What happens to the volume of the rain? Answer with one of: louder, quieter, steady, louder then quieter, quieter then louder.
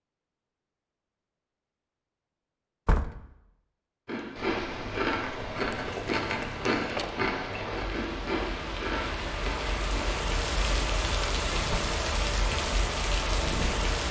louder.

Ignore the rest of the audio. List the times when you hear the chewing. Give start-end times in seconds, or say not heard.
4.0-10.1.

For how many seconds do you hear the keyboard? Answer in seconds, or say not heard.
not heard.